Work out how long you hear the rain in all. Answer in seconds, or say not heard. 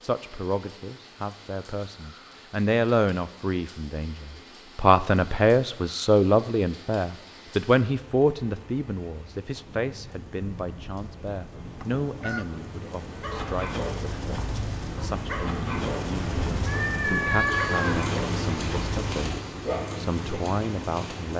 21 s.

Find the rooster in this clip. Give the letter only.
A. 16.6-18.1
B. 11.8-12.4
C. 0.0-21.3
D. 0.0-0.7
B.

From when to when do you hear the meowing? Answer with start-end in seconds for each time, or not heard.
16.6-18.1.